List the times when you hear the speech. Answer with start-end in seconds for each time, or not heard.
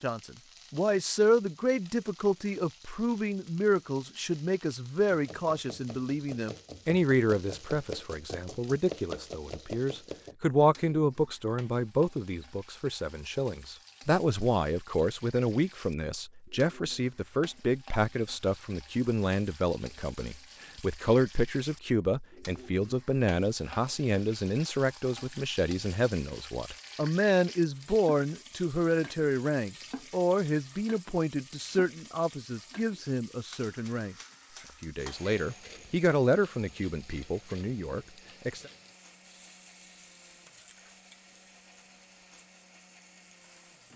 0.0-34.1, 34.8-38.7.